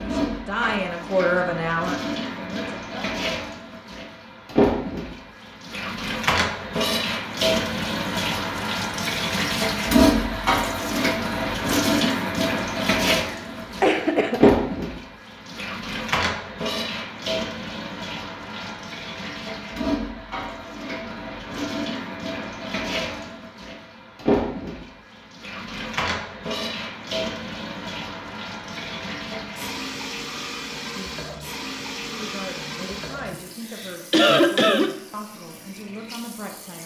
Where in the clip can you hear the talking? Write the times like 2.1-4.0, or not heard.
0.0-3.1, 32.1-36.8.